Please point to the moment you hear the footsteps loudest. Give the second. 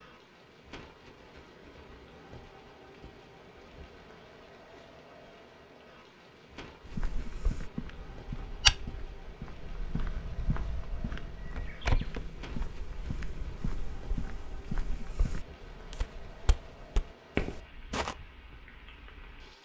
9 s.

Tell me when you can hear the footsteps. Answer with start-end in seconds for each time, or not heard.
6.8-18.1.